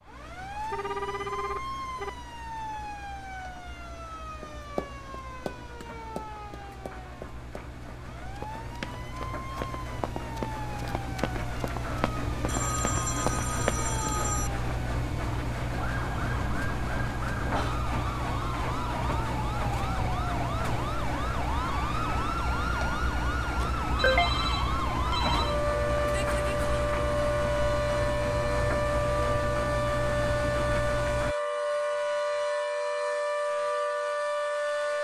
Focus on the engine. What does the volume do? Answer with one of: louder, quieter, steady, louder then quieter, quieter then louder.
louder.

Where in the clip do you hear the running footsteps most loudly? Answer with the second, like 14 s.
14 s.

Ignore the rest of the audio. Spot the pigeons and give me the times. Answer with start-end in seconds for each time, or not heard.
not heard.